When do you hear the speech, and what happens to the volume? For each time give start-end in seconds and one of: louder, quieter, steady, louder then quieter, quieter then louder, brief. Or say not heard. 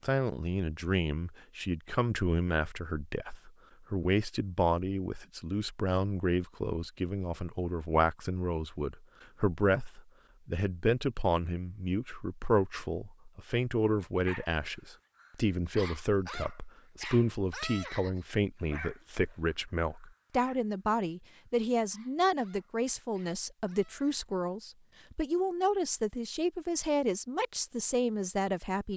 0.0-28.9 steady.